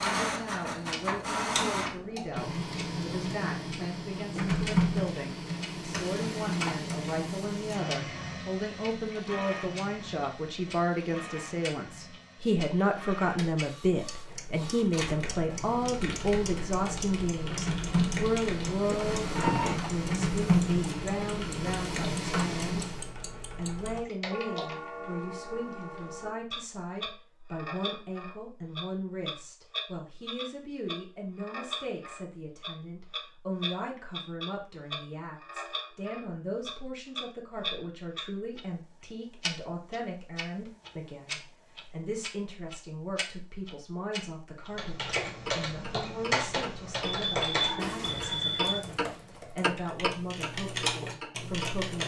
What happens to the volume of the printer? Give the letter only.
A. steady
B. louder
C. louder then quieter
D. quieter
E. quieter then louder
E.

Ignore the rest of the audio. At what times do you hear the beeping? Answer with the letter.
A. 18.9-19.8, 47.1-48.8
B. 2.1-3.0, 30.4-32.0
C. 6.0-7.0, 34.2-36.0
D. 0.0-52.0
A.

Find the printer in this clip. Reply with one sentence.
You can hear the printer from 0.0 to 23.1 s.